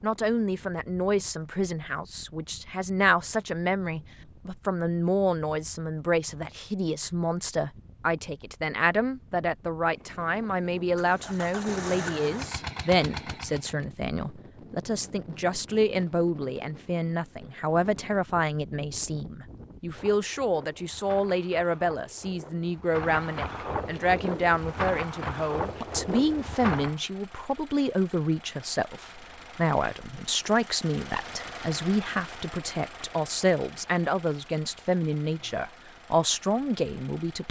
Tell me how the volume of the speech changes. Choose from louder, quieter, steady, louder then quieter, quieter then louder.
steady.